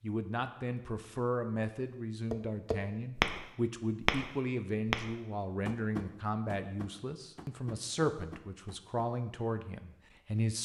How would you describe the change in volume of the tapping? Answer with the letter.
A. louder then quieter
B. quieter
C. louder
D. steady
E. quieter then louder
B.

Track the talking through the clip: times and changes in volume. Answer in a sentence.
You can hear the talking from 0.0 to 10.6 s, at a steady volume.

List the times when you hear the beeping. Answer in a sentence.
You can't hear the beeping here.